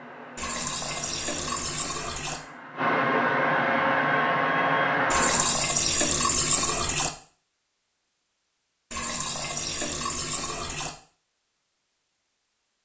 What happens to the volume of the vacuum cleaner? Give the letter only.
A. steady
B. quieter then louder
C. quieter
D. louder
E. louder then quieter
D.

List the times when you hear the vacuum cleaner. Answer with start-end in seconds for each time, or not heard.
0.0-5.6.